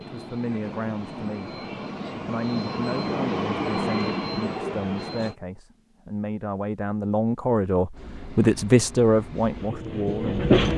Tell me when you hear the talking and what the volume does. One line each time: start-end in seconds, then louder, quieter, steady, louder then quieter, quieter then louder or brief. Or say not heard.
0.0-1.6 brief
2.2-10.4 louder.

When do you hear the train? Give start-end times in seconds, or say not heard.
0.0-5.3, 7.9-10.7.